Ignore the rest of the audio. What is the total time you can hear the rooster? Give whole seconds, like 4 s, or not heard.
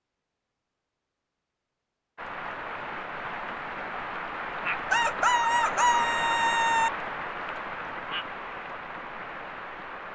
2 s.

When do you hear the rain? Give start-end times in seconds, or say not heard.
2.1-10.1.